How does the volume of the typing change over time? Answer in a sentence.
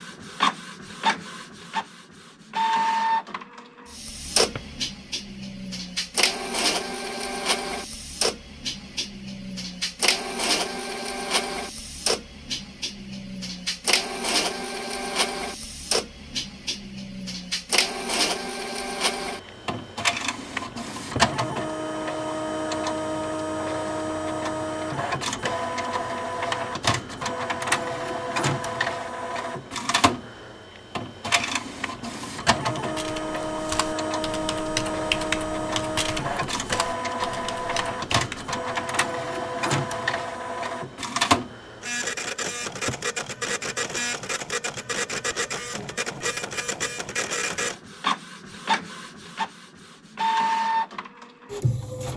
The loudness of the typing goes up, then down.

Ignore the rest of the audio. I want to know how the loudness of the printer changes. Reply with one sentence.
The loudness of the printer stays about the same.